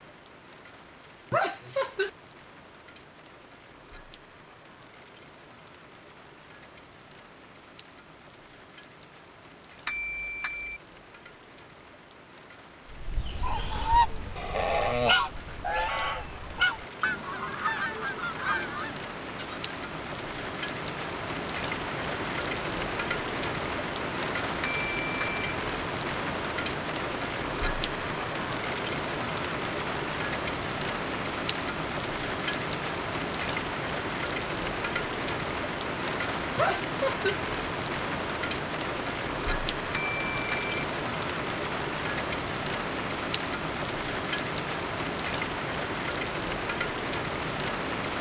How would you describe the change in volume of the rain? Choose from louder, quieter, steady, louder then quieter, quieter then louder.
louder.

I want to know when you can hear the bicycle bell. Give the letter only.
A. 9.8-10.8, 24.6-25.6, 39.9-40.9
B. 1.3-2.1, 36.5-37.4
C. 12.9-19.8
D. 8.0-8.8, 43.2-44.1
A.